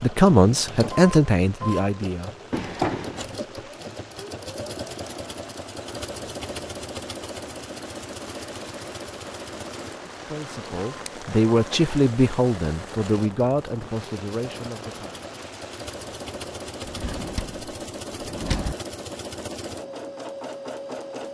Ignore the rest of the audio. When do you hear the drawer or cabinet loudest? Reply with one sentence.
The volume of the drawer or cabinet peaks at 3 seconds.